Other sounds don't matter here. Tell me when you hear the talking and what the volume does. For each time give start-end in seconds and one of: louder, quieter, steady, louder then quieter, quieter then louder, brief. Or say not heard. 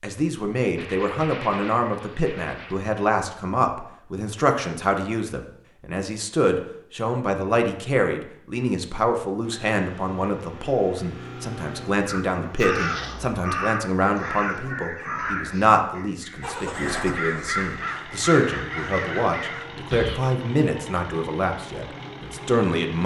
0.0-23.0 steady.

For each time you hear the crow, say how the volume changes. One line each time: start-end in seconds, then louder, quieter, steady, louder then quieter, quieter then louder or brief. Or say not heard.
12.1-20.2 quieter then louder.